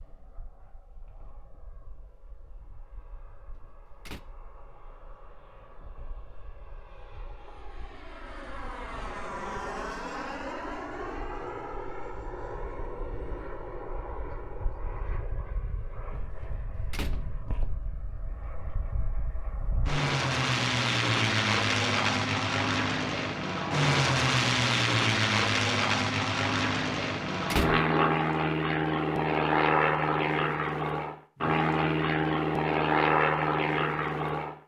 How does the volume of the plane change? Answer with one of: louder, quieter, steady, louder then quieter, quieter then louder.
louder.